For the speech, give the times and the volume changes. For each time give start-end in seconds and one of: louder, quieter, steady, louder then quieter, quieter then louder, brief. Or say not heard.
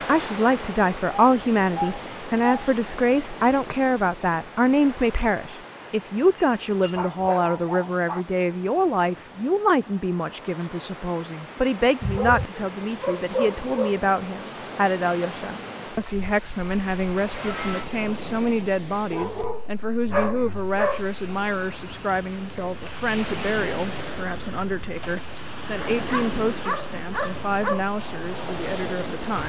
0.1-29.4 quieter.